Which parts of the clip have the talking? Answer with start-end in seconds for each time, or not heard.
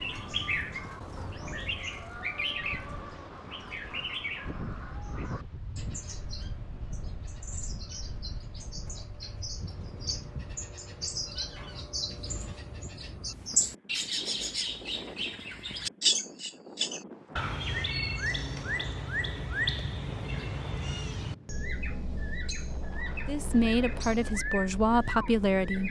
23.2-25.8.